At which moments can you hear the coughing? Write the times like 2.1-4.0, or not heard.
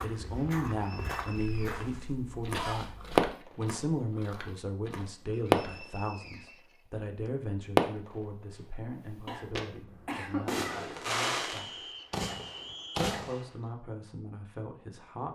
1.4-3.3, 9.2-10.4.